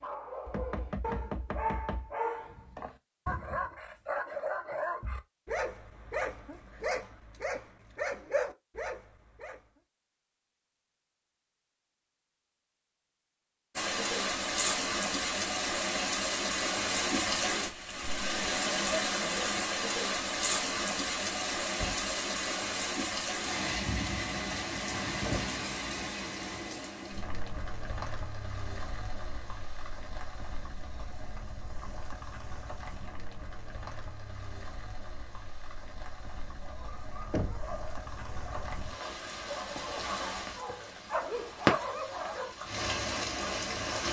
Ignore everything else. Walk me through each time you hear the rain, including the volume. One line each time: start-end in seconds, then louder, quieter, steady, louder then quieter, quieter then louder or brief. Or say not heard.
13.8-44.0 quieter then louder.